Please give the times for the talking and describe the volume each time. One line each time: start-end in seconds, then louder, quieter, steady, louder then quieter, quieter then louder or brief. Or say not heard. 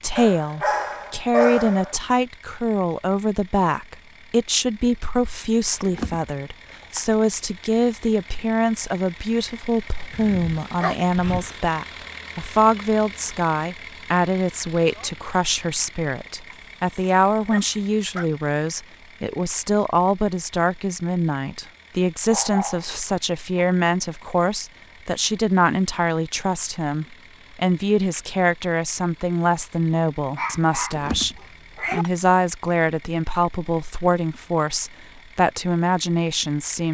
0.0-36.8 steady.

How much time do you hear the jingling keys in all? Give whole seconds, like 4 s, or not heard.
3 s.